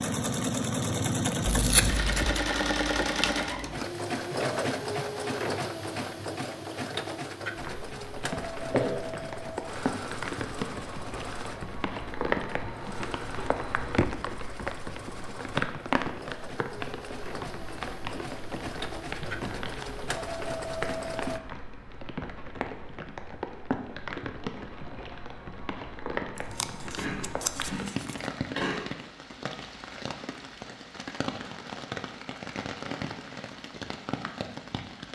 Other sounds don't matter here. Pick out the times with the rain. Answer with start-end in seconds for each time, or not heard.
7.5-35.1.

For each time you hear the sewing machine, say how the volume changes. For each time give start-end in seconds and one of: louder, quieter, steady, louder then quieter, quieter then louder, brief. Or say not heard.
0.0-21.4 quieter then louder.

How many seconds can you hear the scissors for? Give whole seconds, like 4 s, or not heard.
3 s.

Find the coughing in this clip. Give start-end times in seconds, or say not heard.
8.7-9.2, 26.9-28.9.